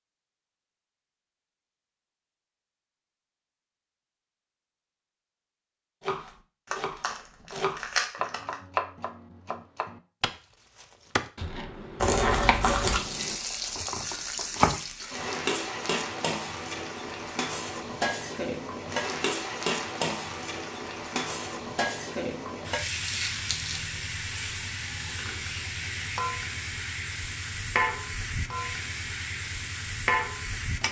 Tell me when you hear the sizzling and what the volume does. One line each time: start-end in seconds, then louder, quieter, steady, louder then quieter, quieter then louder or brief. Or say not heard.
12.8-30.8 steady.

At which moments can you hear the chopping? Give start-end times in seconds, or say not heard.
6.0-14.8.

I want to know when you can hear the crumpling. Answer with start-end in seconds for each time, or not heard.
6.7-8.6, 11.9-13.0, 23.0-23.8.